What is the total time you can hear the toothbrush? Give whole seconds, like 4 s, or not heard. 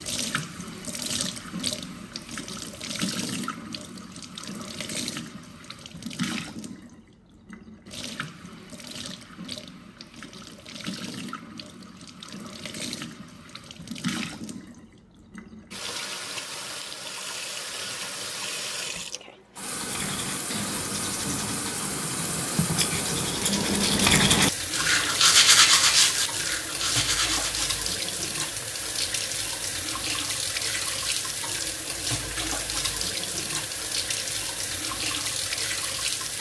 8 s.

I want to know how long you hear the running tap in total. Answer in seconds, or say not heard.
36 s.